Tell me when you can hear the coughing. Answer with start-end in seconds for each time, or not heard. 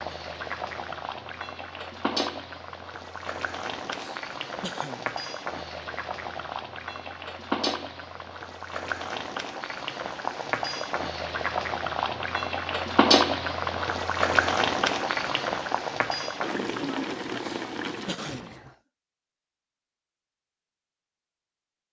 3.9-5.1, 17.3-18.8.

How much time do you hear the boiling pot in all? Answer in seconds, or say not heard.
19 s.